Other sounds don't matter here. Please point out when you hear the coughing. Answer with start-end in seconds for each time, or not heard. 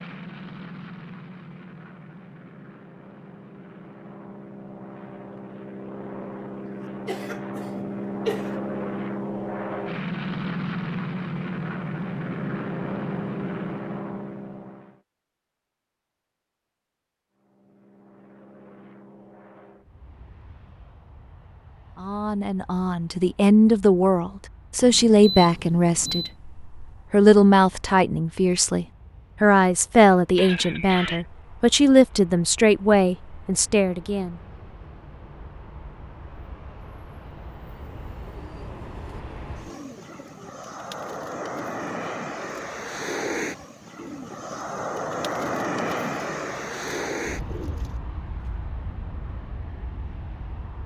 7.0-8.6, 30.4-31.2.